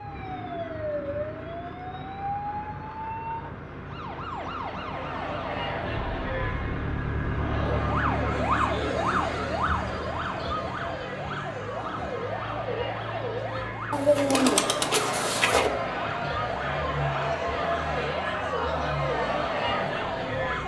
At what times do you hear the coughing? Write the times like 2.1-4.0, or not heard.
not heard.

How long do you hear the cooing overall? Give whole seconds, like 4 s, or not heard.
2 s.